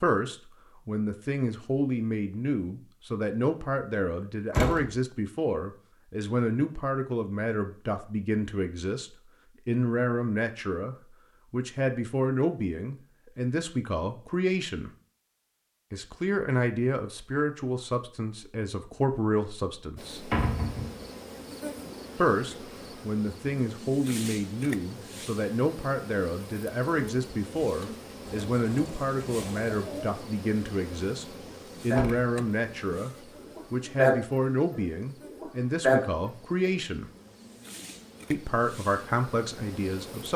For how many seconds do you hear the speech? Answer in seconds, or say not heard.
36 s.